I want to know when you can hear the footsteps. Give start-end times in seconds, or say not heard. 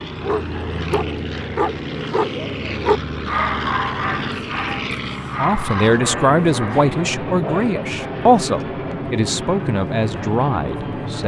not heard.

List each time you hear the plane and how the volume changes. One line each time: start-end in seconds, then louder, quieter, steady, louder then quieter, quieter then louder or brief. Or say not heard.
0.0-11.2 steady.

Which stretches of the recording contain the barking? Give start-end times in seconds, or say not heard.
0.1-7.7.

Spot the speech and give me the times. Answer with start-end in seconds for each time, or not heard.
5.4-11.2.